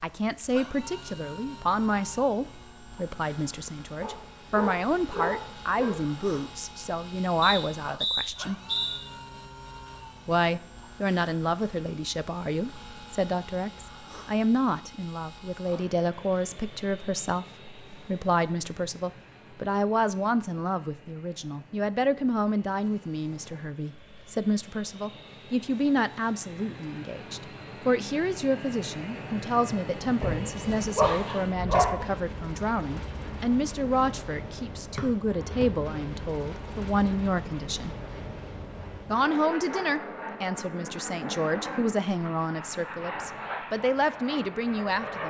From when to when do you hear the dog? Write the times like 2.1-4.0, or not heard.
4.0-6.2, 30.2-32.0.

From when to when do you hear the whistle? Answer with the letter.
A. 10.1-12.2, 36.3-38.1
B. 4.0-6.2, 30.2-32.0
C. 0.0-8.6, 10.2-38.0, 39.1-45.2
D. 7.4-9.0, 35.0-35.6
D.